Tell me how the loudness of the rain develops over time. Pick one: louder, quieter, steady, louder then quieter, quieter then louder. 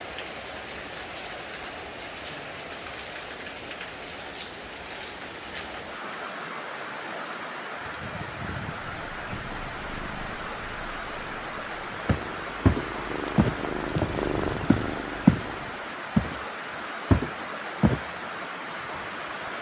steady.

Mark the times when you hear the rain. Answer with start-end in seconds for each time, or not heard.
0.0-19.5.